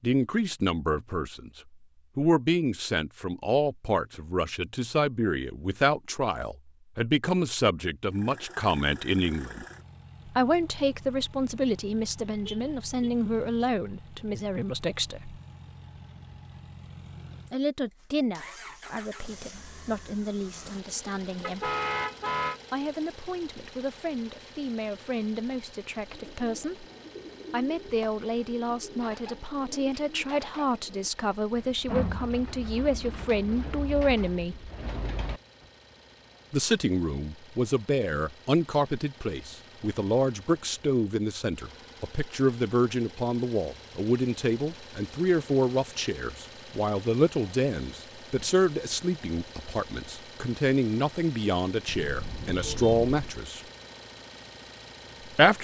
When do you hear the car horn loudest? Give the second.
22 s.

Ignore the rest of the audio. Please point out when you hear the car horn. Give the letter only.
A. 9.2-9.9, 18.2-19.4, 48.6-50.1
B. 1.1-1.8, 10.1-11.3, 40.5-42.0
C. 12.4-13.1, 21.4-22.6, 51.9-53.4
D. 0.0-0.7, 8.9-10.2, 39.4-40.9
C.